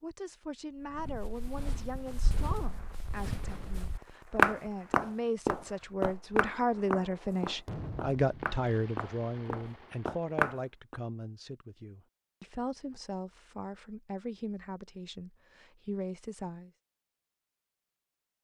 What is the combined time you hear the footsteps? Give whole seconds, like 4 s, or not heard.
10 s.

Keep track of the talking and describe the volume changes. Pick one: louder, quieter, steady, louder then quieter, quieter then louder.
louder then quieter.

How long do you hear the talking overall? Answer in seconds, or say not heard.
17 s.